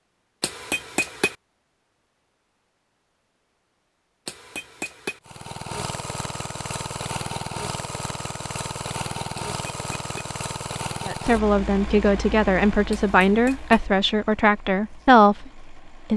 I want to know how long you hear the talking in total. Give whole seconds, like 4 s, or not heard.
5 s.